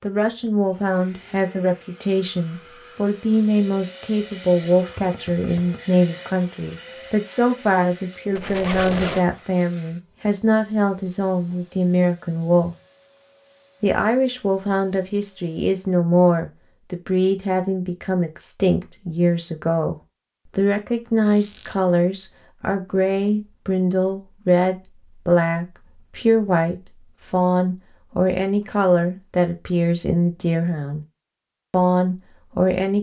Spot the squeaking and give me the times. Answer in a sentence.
The squeaking can be heard from 8.3 to 9.2 s and from 21.2 to 21.8 s.